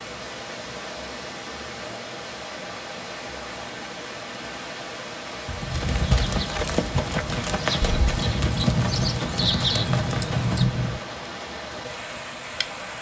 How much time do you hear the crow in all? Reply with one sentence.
You can't hear the crow here.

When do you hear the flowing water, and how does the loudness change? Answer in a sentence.
The flowing water can be heard from 0.0 to 12.9 s, at a steady volume.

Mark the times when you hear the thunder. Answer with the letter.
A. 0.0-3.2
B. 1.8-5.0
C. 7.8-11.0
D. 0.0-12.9
C.